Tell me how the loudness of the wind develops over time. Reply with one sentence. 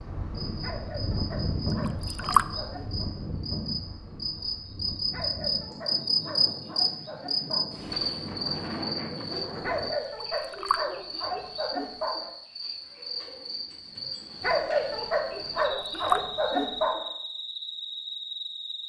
The loudness of the wind goes down, then up.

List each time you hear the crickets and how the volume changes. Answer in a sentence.
You can hear the crickets from 0.3 to 18.8 s, getting louder then quieter.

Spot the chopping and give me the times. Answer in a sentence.
You can't hear the chopping here.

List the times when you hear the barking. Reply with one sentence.
The barking can be heard from 0.6 to 3.0 s, from 5.1 to 7.7 s, from 9.6 to 12.3 s and from 14.4 to 17.1 s.